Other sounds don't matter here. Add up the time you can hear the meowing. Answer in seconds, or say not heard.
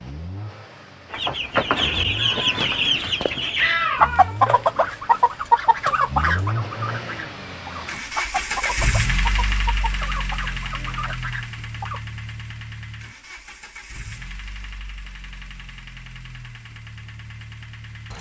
2 s.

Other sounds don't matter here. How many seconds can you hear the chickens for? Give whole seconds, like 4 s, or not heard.
11 s.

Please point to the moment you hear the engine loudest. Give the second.
9 s.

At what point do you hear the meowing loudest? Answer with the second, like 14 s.
4 s.